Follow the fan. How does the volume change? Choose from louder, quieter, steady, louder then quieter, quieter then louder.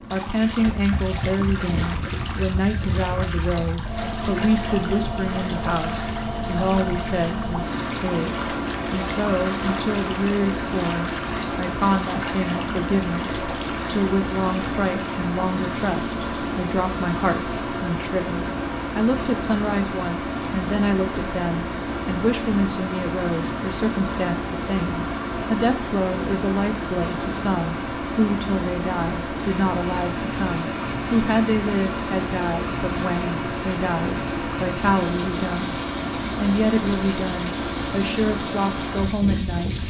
steady.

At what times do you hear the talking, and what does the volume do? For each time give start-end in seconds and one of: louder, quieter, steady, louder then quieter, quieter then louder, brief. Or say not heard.
0.1-39.8 steady.